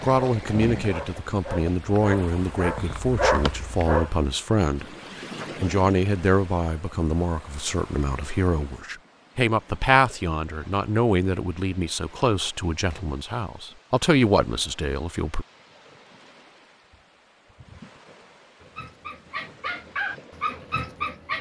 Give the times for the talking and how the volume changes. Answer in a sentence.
The talking can be heard from 0.0 to 15.4 s, at a steady volume.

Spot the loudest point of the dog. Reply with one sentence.
The loudest moment of the dog is at 3 seconds.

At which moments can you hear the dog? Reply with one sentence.
You can hear the dog from 0.0 to 4.2 s and from 18.6 to 21.3 s.